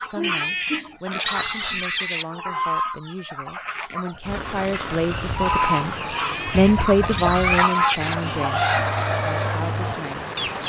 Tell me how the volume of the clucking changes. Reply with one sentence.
The loudness of the clucking goes up.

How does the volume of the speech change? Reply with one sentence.
The volume of the speech goes up, then down.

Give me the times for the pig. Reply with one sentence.
You can hear the pig from 0.2 to 2.2 s and from 6.2 to 8.2 s.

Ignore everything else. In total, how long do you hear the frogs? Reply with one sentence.
The frogs can't be heard in this clip.